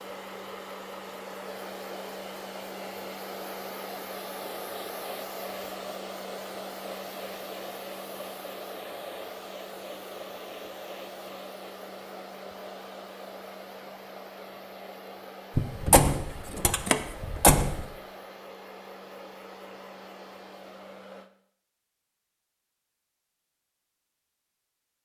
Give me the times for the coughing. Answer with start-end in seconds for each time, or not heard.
not heard.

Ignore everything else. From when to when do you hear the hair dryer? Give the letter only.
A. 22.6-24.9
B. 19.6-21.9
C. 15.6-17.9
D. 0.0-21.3
D.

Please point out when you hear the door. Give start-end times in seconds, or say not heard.
15.6-17.9.